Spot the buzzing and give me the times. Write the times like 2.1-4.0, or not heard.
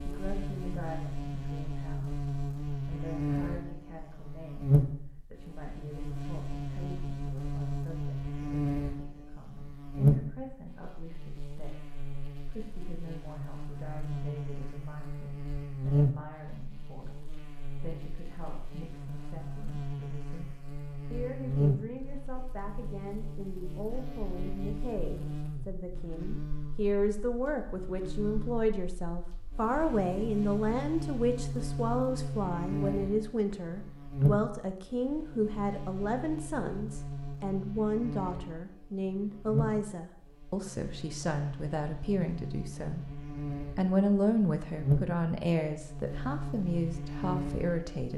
0.0-48.1.